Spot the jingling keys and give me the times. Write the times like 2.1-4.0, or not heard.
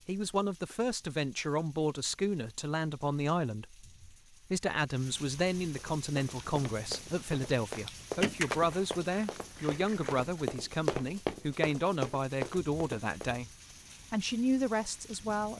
8.2-10.4.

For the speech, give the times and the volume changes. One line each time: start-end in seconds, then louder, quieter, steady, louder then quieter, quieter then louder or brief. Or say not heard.
0.1-13.5 steady
14.1-15.5 brief.